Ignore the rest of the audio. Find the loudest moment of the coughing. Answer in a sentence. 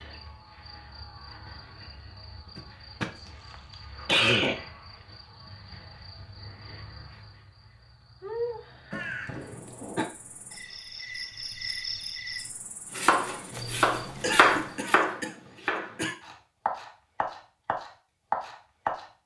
The volume of the coughing peaks at 4 seconds.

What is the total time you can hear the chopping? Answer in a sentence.
You can hear the chopping for 6 seconds altogether.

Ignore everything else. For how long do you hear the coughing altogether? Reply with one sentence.
The coughing can be heard for 5 seconds in total.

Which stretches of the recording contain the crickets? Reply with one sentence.
The crickets can be heard from 0.0 to 14.8 s.